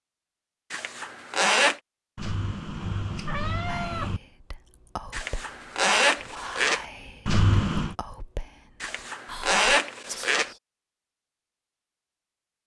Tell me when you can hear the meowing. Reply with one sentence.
The meowing can be heard from 2.1 to 4.2 s and from 7.2 to 8.0 s.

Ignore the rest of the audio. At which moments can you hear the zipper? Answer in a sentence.
The zipper can be heard from 0.7 to 1.8 s, from 5.1 to 6.8 s and from 8.8 to 10.5 s.